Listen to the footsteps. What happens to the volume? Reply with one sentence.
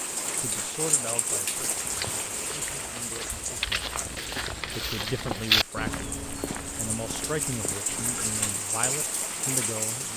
The loudness of the footsteps goes up, then down.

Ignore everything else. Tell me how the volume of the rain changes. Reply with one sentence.
The volume of the rain goes down, then up.